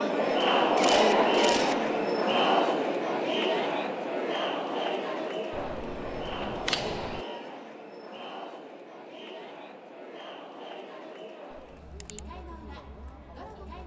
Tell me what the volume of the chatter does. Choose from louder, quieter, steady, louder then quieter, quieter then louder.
quieter.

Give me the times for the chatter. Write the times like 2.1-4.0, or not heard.
0.0-13.8.